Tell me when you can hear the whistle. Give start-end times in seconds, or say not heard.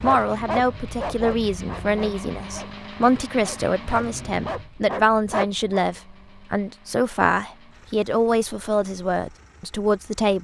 not heard.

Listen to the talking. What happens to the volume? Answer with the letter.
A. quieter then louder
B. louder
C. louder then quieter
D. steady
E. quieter
D.